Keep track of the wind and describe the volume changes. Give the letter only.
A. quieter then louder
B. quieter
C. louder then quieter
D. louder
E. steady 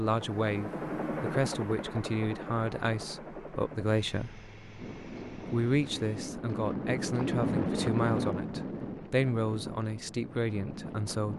C.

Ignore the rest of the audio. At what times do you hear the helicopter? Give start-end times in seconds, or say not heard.
0.0-6.3.